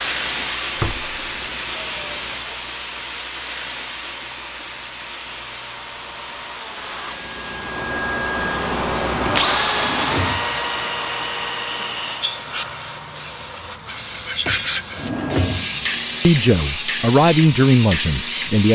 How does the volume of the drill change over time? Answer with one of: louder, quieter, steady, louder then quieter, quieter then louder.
louder then quieter.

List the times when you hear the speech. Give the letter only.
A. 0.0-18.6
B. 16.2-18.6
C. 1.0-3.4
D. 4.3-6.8
B.